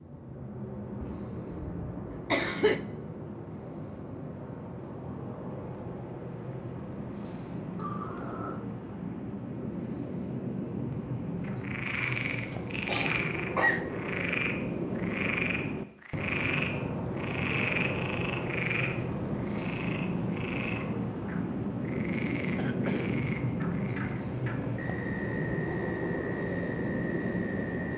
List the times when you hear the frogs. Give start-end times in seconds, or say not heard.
11.4-27.9.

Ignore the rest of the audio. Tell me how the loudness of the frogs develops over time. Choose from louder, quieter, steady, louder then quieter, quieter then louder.
quieter.